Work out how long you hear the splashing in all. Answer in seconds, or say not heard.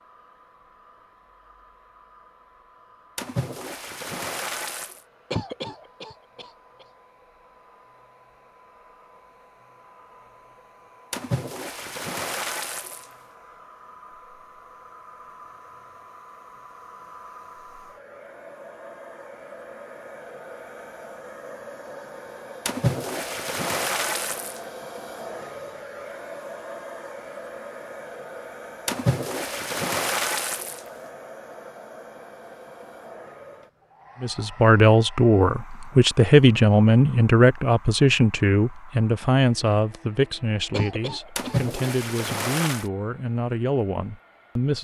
9 s.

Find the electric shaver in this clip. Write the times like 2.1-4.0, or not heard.
not heard.